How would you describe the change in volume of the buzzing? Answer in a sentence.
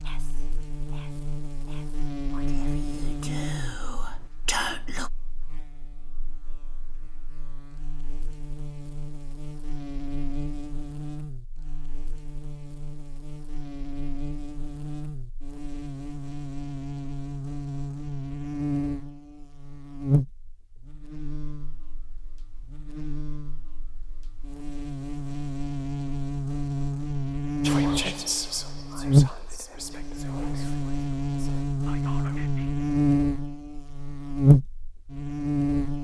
The loudness of the buzzing goes up.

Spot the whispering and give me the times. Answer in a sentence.
You can hear the whispering from 0.0 to 5.1 s and from 27.6 to 32.7 s.